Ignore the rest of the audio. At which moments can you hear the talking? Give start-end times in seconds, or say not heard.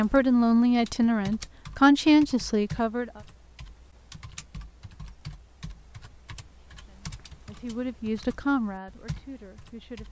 0.0-3.2, 6.8-10.0.